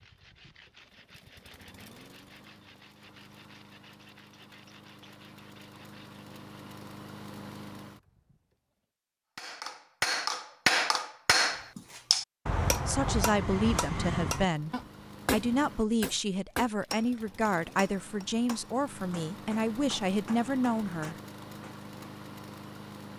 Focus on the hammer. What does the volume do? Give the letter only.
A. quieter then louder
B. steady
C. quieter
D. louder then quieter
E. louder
C.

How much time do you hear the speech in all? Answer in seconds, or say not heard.
8 s.